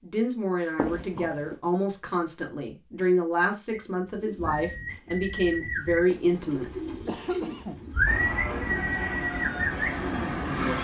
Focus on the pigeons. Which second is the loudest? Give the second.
8 s.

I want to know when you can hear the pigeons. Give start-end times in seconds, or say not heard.
3.7-10.7.